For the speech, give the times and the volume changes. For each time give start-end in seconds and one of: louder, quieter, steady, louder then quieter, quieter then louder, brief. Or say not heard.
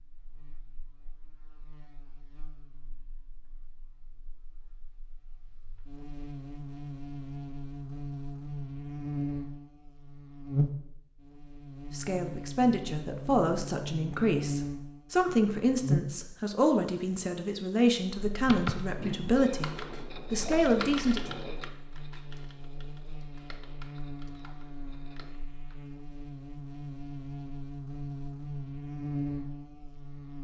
11.9-21.3 steady.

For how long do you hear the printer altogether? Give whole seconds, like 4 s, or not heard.
not heard.